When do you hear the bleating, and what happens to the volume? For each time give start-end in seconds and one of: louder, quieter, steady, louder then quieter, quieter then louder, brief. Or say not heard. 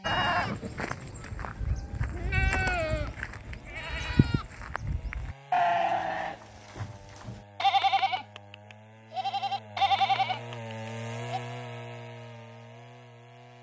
0.0-11.4 louder.